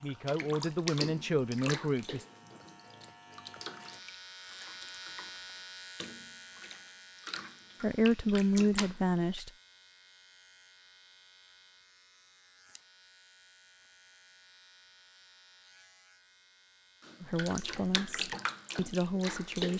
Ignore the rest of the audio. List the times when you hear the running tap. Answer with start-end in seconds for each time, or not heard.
0.1-9.2, 17.0-19.7.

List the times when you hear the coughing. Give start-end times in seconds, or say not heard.
not heard.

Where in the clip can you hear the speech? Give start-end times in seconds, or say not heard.
0.0-2.2, 7.8-9.5, 17.2-19.7.